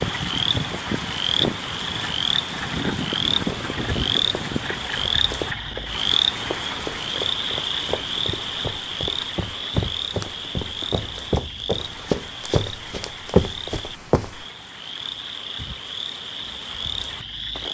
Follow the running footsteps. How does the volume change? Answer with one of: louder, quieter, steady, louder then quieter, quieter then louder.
louder.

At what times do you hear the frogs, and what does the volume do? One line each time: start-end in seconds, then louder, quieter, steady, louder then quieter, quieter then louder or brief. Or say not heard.
0.0-17.6 quieter.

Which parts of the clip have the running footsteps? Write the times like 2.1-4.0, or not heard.
3.4-14.4.